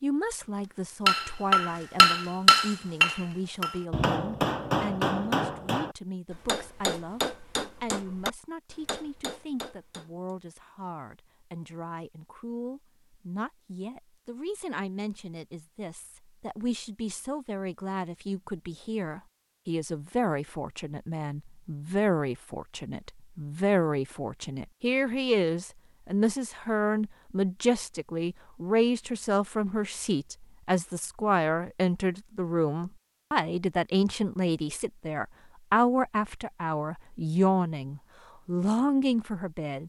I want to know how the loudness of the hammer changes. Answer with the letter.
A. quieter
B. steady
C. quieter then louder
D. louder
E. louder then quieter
A.